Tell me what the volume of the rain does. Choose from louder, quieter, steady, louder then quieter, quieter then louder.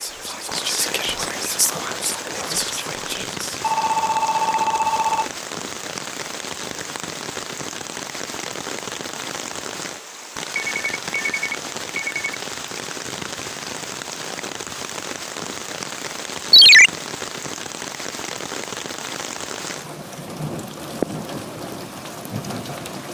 steady.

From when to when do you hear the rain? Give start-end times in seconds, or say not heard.
0.0-23.1.